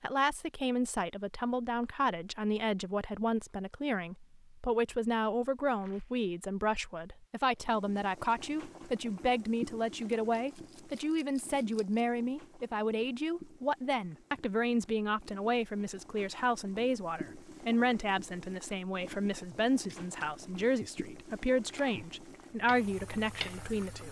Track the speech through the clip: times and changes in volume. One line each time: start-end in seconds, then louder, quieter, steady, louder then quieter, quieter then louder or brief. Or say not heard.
0.0-24.0 steady.